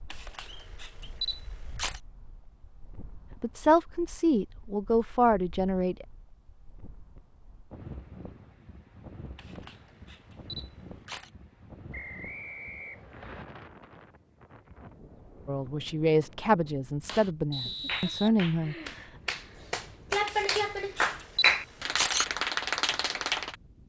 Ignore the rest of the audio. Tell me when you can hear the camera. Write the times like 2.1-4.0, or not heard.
0.1-2.0, 9.3-11.3, 20.2-22.2.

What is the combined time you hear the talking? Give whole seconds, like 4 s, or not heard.
6 s.